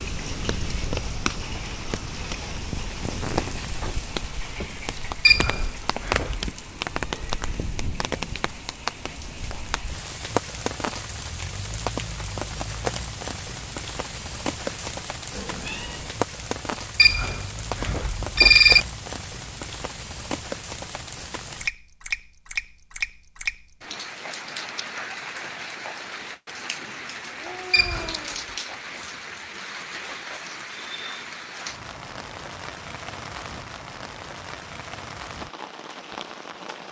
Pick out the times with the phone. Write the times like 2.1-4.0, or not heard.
5.2-6.5, 16.9-18.9, 27.7-28.2.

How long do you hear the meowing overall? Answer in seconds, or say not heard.
3 s.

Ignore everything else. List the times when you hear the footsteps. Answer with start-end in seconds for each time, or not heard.
not heard.